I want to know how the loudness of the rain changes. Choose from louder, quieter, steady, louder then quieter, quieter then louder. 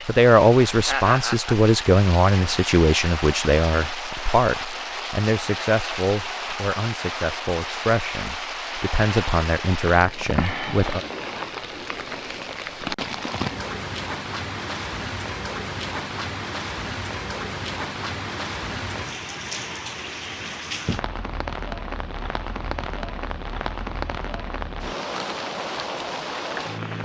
steady.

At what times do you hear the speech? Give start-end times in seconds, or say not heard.
0.1-11.0.